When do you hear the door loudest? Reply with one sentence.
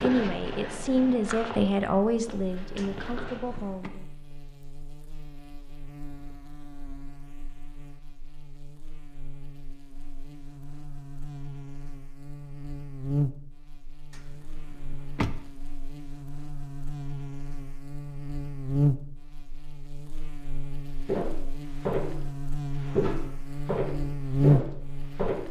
The loudest moment of the door is at 15 seconds.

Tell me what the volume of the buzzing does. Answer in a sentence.
The volume of the buzzing goes up.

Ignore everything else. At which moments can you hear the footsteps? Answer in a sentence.
You can hear the footsteps from 0.0 to 3.6 s and from 21.1 to 25.4 s.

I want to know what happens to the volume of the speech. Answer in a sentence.
The volume of the speech goes down.